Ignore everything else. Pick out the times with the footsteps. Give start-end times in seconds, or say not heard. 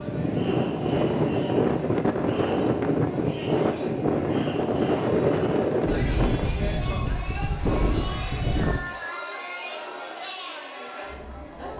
not heard.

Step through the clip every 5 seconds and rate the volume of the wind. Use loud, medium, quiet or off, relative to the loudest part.
loud, loud, off.